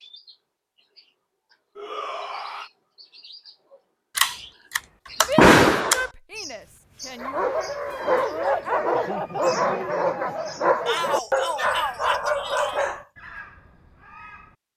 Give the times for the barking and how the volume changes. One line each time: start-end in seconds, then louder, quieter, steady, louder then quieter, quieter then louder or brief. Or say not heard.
7.2-13.1 steady.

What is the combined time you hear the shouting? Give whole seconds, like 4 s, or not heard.
5 s.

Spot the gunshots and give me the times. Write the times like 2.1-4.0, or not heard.
4.2-6.0.